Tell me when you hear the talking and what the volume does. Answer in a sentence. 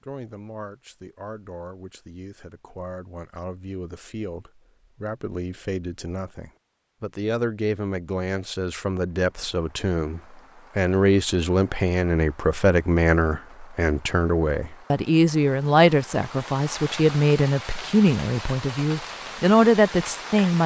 You can hear the talking from 0.0 to 20.6 s, getting louder.